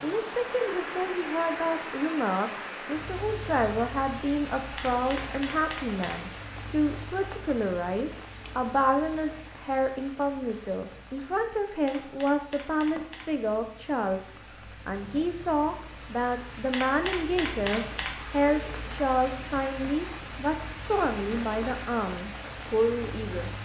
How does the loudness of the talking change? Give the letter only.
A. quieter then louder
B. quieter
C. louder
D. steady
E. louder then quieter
D.